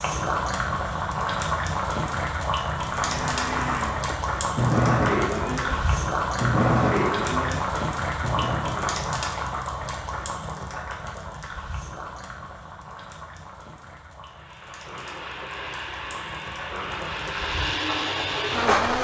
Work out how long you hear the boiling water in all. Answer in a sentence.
The boiling water can be heard for 19 seconds in total.